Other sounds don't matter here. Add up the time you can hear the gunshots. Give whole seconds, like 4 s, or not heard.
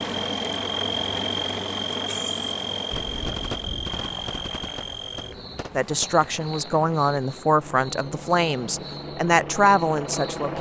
3 s.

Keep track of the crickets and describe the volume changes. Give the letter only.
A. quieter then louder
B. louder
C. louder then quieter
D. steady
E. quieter
E.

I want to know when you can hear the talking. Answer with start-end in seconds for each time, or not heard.
5.8-10.5.